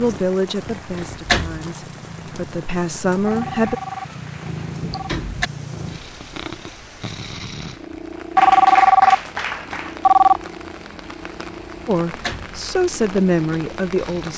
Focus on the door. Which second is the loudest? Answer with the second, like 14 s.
1 s.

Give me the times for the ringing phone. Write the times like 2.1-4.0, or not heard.
3.2-5.2, 8.3-10.4.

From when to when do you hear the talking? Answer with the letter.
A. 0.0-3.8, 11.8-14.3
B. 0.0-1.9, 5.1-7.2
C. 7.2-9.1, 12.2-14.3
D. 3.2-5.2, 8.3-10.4
A.